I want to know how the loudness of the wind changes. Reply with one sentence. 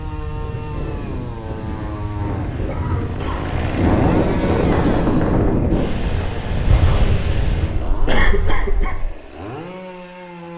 The volume of the wind goes up, then down.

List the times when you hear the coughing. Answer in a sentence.
You can hear the coughing from 2.6 to 3.5 s and from 8.1 to 9.0 s.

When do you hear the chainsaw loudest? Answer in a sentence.
The loudest moment of the chainsaw is at 4 seconds.